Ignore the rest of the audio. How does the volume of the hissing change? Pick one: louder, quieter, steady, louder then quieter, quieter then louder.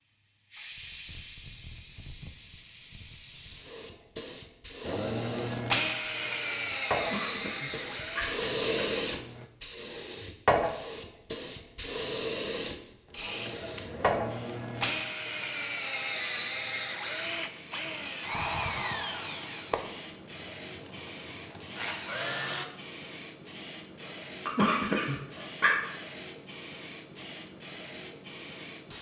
louder then quieter.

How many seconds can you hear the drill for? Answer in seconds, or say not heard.
14 s.